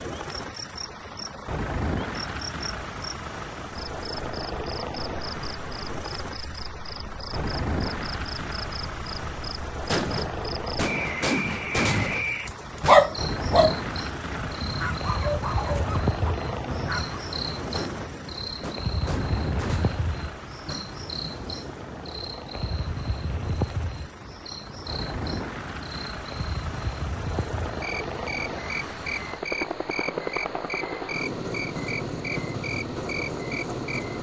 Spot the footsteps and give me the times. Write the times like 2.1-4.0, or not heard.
not heard.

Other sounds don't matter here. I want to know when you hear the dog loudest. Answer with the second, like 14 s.
13 s.